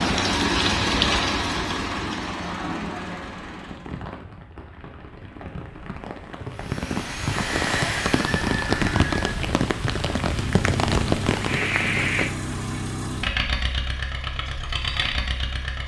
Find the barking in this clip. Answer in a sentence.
You can't hear the barking here.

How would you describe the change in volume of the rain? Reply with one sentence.
The loudness of the rain goes down, then up.